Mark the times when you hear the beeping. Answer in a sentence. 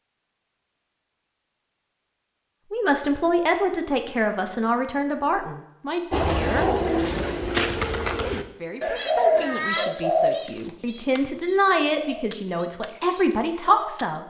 The beeping can't be heard in this clip.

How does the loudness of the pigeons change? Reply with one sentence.
The volume of the pigeons goes down.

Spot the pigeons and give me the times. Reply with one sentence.
You can hear the pigeons from 6.1 to 14.1 s.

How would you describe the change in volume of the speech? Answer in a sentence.
The volume of the speech goes down, then up.